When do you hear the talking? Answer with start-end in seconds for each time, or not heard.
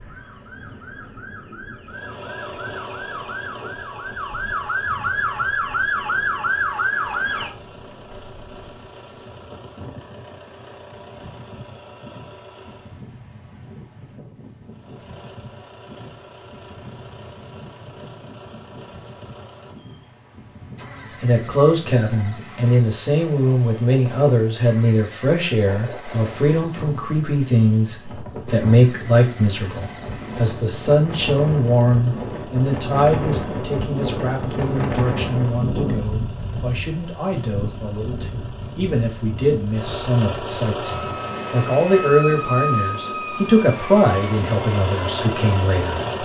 21.2-46.0.